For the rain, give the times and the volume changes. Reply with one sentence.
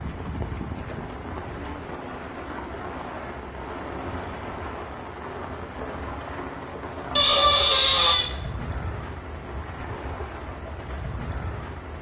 The rain can be heard from 0.0 to 11.9 s, at a steady volume.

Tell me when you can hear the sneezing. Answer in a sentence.
You can hear the sneezing from 7.2 to 8.3 s.